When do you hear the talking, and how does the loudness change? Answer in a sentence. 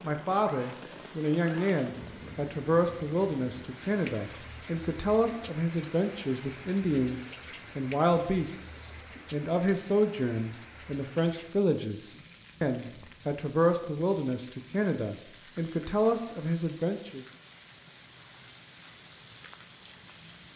The talking can be heard from 0.0 to 17.2 s, at a steady volume.